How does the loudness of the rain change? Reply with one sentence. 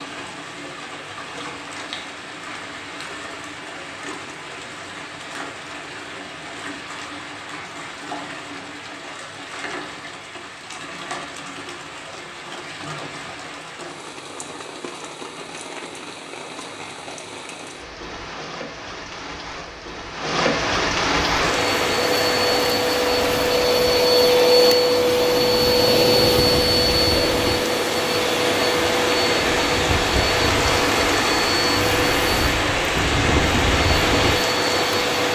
The volume of the rain goes up.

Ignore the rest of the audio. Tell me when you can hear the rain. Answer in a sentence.
The rain can be heard from 0.0 to 35.2 s.